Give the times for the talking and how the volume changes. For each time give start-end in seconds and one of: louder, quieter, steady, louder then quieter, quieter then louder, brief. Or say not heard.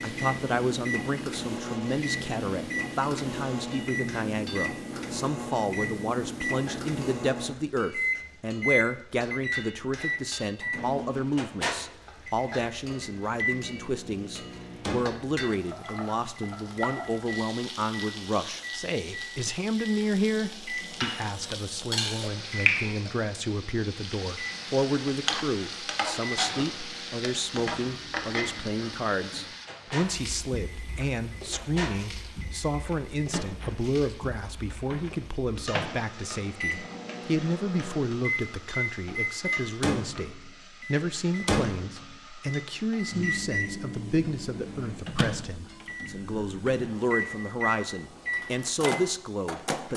0.0-49.9 steady.